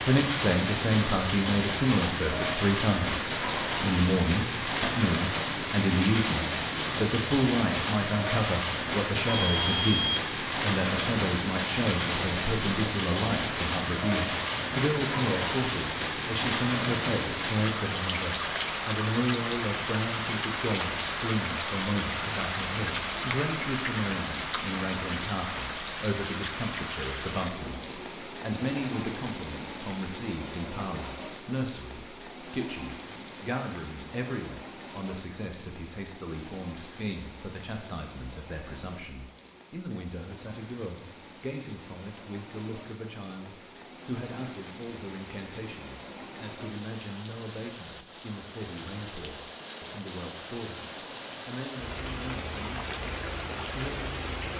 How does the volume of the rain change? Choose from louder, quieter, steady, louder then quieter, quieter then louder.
quieter then louder.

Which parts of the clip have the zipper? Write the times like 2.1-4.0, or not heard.
not heard.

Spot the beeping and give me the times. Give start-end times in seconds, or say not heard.
9.2-10.2.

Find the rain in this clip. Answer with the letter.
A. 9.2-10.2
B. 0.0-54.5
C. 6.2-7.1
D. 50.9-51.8
B.